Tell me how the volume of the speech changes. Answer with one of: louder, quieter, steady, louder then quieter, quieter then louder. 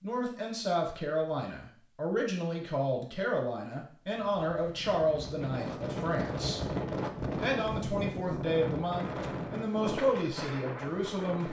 steady.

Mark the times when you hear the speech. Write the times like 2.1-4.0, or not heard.
0.0-6.6, 7.4-11.4.